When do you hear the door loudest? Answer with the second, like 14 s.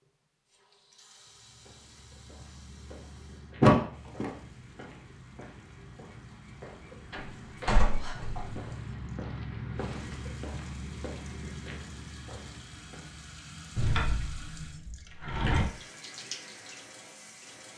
4 s.